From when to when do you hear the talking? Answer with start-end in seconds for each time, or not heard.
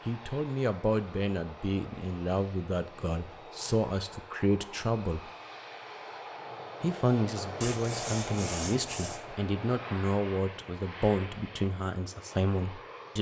0.1-5.2, 6.8-13.1.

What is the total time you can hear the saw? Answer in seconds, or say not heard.
2 s.